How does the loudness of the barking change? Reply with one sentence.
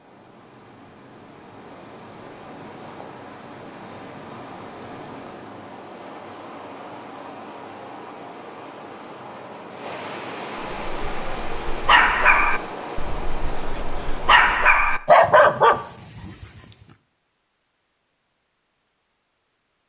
The volume of the barking goes down, then up.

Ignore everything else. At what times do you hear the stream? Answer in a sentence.
You can hear the stream from 0.0 to 14.6 s.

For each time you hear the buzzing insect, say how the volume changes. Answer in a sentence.
You can't hear the buzzing insect here.